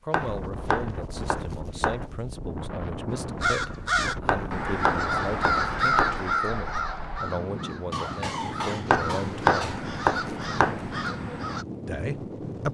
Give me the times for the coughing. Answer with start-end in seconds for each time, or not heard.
7.9-9.9.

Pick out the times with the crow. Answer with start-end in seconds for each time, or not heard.
3.1-11.7.